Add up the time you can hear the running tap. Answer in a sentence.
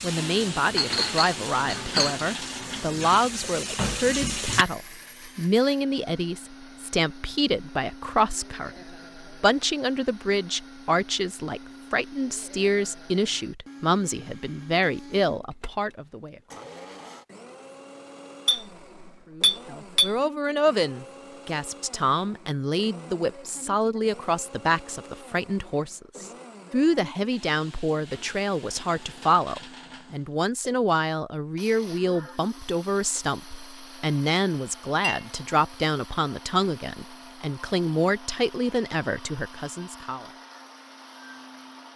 The running tap can be heard for 5 seconds in total.